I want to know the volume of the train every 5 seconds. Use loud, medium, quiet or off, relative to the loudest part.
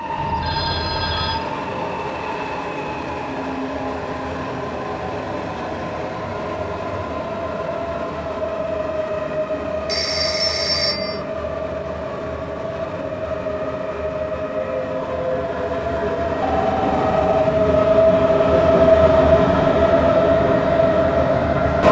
medium, medium, medium, loud, loud.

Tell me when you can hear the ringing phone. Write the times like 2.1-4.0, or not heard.
0.1-1.4, 9.8-11.2, 16.4-17.4.